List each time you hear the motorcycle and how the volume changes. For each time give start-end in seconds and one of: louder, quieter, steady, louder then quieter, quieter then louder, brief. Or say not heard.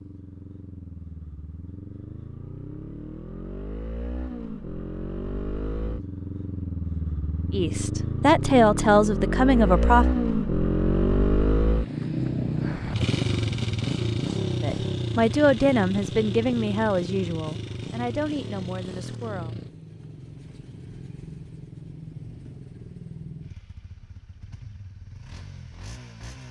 0.0-26.4 louder then quieter.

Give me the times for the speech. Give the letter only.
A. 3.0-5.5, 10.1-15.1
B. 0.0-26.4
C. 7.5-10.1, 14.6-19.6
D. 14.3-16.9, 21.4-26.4
C.